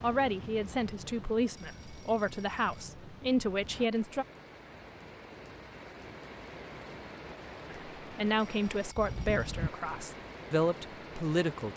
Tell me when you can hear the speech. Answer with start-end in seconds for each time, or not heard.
0.0-4.2, 7.7-11.7.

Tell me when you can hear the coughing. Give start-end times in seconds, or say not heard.
not heard.